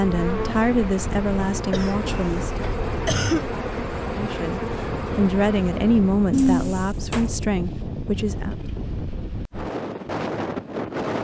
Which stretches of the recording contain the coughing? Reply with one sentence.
The coughing can be heard from 1.7 to 3.5 s and from 6.3 to 7.3 s.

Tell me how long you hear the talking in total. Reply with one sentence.
The talking can be heard for 7 seconds in total.